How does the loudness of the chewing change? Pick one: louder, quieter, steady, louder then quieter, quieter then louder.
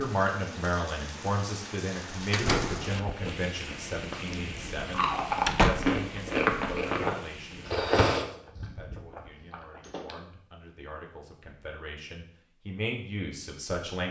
louder then quieter.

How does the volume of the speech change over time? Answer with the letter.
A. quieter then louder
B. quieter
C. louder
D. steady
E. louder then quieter
A.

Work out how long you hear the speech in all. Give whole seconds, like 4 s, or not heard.
14 s.